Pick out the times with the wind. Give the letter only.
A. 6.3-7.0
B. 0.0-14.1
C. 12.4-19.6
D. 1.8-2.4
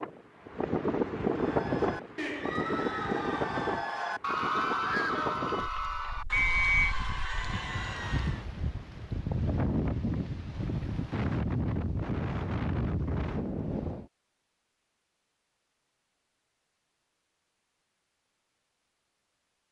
B.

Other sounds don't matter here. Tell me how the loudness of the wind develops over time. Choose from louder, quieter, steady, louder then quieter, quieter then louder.
quieter then louder.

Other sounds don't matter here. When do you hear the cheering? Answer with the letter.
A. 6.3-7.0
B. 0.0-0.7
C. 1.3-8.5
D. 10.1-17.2
C.